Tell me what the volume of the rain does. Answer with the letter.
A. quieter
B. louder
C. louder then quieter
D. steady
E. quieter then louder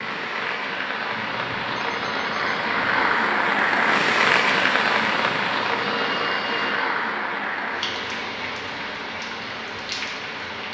C.